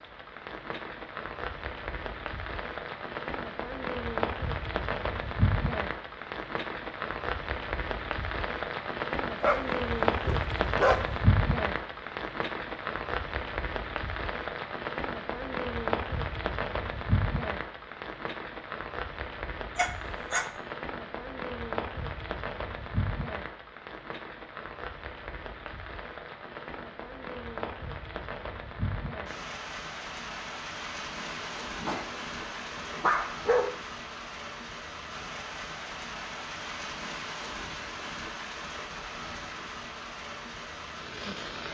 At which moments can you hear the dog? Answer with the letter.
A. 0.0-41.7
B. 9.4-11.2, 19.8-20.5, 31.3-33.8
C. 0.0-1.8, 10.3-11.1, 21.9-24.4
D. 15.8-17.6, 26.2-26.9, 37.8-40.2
B.